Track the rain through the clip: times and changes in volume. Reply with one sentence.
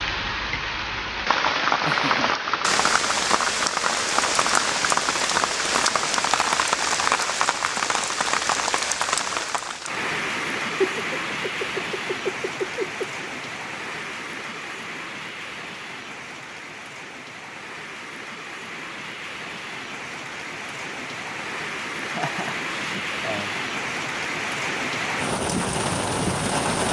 You can hear the rain from 0.0 to 26.8 s, getting quieter then louder.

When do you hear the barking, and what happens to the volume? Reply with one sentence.
The barking can't be heard in this clip.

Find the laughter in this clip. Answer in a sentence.
The laughter can be heard from 1.6 to 2.4 s, from 10.8 to 13.2 s and from 22.0 to 23.6 s.